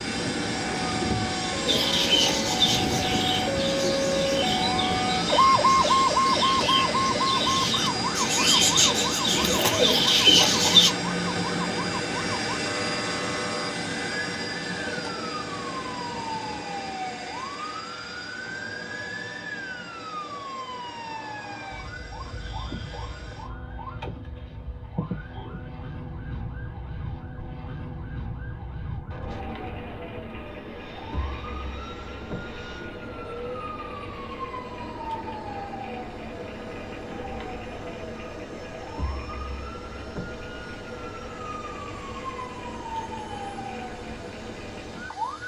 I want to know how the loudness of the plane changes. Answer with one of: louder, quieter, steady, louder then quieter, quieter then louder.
quieter.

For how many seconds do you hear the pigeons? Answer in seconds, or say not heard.
9 s.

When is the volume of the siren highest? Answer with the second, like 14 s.
6 s.